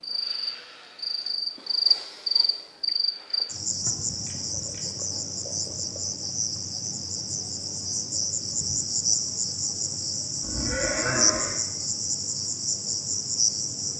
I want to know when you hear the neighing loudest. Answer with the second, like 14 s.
11 s.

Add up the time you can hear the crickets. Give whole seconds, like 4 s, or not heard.
14 s.